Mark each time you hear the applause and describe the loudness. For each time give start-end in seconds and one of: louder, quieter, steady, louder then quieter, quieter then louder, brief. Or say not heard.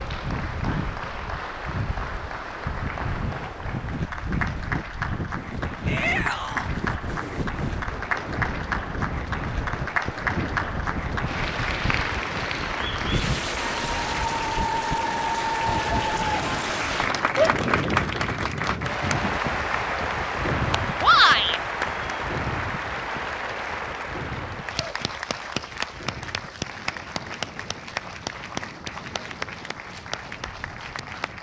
0.0-31.3 louder then quieter.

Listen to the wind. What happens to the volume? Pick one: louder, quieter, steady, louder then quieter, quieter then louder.
quieter.